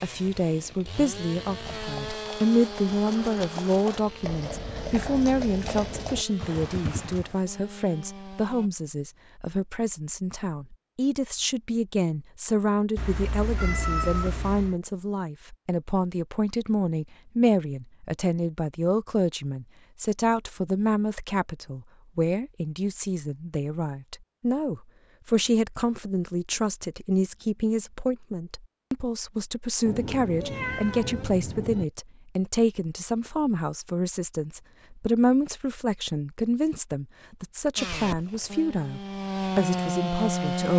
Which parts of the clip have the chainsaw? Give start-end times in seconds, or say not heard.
0.0-8.7, 37.8-40.7.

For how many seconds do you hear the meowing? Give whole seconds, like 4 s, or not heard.
4 s.